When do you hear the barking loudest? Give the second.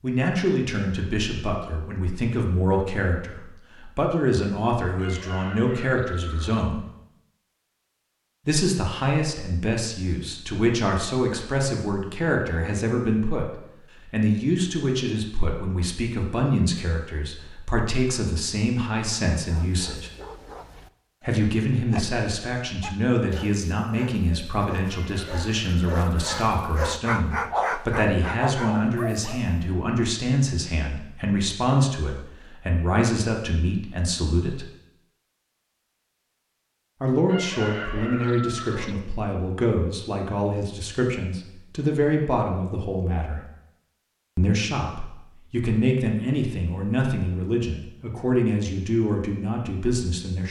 28 s.